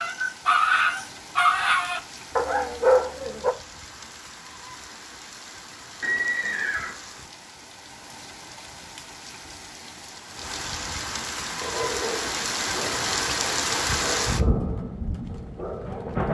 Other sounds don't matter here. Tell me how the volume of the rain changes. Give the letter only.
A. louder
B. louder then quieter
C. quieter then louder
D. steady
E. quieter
A.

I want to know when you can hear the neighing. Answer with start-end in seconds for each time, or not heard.
6.0-7.0.